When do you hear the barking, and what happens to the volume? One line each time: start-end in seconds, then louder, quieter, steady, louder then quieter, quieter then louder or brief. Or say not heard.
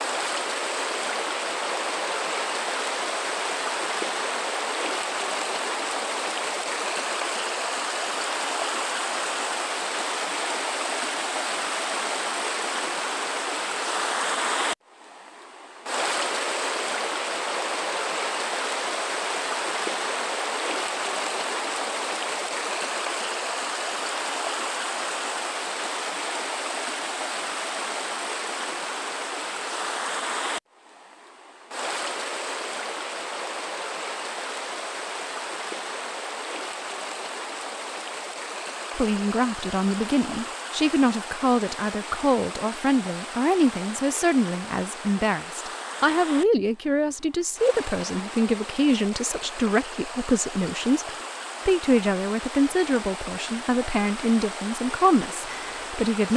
not heard.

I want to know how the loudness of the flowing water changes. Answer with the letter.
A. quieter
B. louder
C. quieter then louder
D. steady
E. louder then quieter
A.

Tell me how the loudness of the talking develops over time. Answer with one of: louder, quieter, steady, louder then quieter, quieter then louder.
steady.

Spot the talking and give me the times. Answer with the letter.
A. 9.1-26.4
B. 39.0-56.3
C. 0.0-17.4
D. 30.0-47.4
B.